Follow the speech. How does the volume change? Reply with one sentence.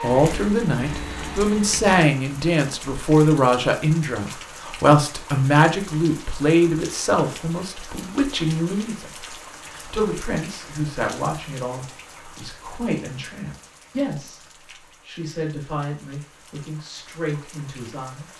The volume of the speech goes down.